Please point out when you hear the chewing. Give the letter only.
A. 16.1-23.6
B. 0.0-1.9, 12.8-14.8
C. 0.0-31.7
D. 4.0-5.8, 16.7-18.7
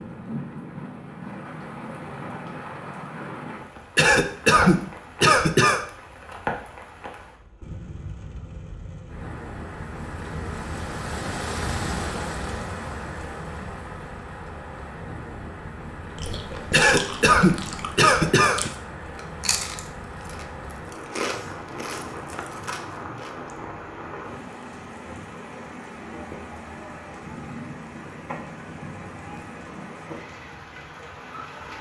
A.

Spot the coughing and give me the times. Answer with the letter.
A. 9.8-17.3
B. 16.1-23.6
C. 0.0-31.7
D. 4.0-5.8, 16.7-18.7
D.